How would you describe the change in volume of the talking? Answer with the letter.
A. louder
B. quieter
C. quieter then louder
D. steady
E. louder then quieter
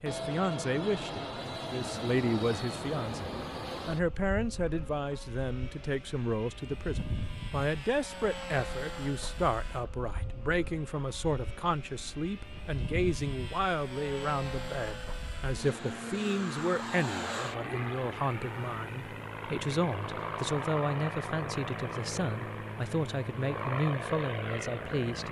D.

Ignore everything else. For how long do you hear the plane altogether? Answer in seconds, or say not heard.
25 s.